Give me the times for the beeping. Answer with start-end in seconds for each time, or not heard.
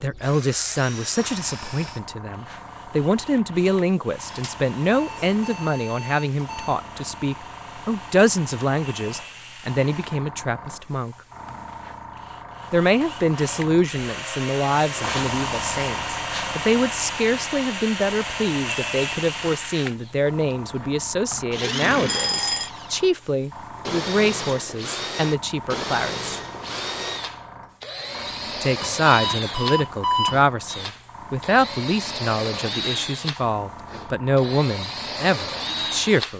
4.3-6.8, 22.1-22.7, 28.8-30.4.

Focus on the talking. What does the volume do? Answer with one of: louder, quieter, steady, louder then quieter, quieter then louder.
steady.